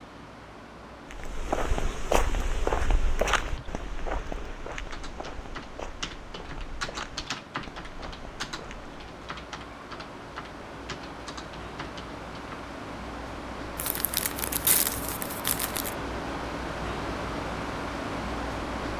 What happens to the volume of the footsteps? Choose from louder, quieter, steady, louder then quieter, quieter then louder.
quieter.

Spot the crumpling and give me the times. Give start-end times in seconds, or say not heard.
13.8-15.9.